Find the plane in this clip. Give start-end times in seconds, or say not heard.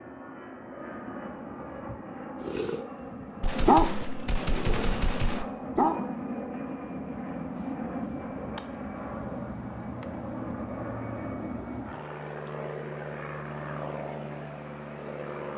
0.0-15.5.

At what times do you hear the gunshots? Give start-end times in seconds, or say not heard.
3.4-5.5.